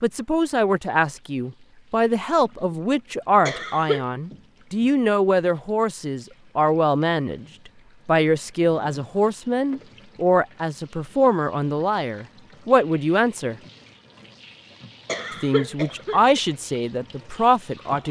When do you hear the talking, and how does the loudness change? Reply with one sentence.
The talking can be heard from 0.0 to 7.5 s, at a steady volume; from 8.1 to 13.6 s, at a steady volume; and briefly from 15.4 to 18.0 s.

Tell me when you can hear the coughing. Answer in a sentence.
You can hear the coughing from 3.5 to 4.0 s and from 15.1 to 16.4 s.